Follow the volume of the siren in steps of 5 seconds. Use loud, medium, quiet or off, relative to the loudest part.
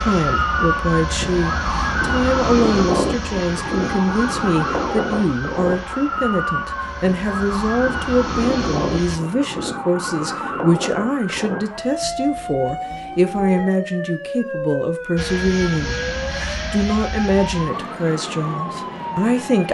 loud, loud, medium, medium.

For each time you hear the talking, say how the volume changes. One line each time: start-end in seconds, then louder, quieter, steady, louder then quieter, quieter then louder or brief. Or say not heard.
0.0-19.6 steady.